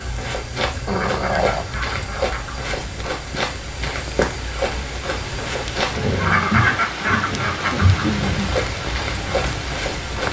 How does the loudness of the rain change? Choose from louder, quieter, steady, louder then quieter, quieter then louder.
louder.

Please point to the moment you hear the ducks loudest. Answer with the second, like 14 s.
7 s.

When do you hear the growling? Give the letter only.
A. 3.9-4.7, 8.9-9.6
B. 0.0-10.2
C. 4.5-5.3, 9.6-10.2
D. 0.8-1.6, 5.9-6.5
D.